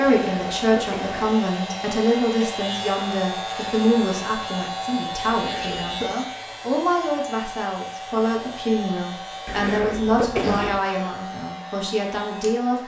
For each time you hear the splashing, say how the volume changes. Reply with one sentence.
You can't hear the splashing here.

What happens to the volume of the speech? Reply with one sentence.
The loudness of the speech stays about the same.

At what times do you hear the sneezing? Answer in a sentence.
You can hear the sneezing from 0.1 to 1.4 s, from 5.2 to 6.2 s and from 9.4 to 10.8 s.